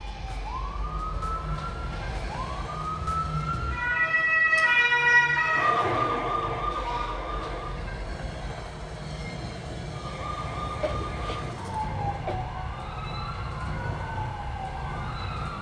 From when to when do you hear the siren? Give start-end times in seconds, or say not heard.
0.0-7.8, 9.9-15.5.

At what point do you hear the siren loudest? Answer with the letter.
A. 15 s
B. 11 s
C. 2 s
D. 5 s
D.